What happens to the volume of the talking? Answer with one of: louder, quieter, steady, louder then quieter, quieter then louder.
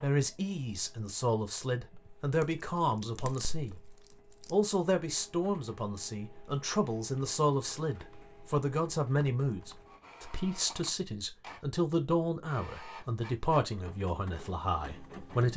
steady.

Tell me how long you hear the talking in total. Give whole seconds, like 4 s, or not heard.
15 s.